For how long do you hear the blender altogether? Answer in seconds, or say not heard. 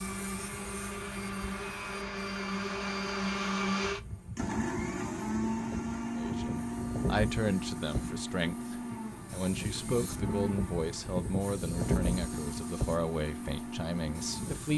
15 s.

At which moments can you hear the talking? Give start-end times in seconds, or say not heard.
6.2-14.7.